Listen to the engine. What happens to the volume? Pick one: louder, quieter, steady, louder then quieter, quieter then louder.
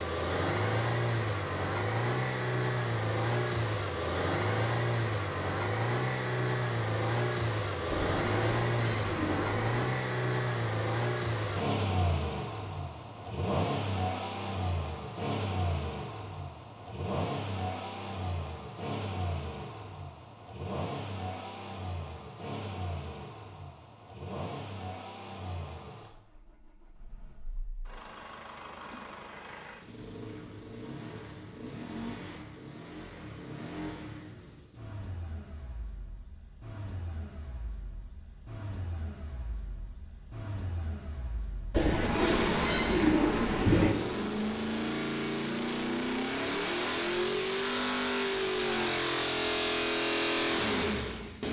quieter then louder.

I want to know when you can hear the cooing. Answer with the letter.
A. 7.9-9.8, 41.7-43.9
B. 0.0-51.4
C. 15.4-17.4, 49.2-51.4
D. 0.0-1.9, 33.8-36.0
A.